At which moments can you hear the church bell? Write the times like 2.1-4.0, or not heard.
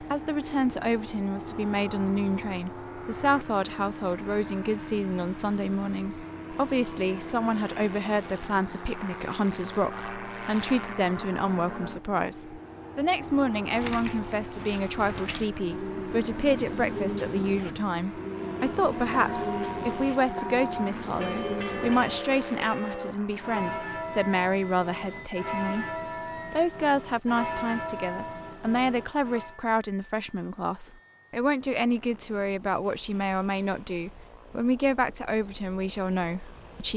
18.5-29.6.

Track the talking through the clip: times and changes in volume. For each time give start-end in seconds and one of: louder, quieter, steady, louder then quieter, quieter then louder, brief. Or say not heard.
0.0-25.9 steady
26.5-36.9 steady.